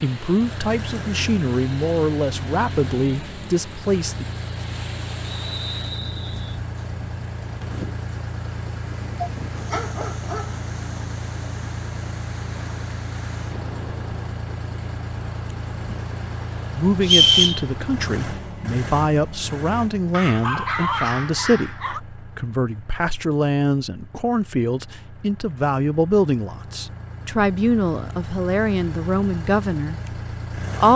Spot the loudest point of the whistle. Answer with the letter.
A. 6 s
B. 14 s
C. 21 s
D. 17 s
D.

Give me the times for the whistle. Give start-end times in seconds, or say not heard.
5.2-6.5, 17.0-17.6.